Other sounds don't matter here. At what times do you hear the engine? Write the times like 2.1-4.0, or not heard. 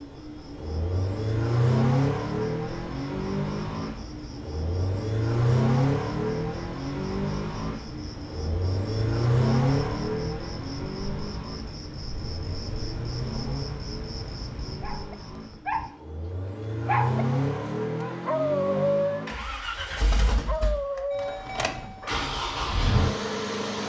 0.0-23.8.